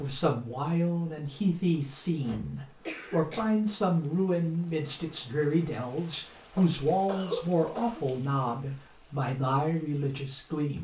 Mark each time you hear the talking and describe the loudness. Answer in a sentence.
You can hear the talking from 0.0 to 10.7 s, at a steady volume.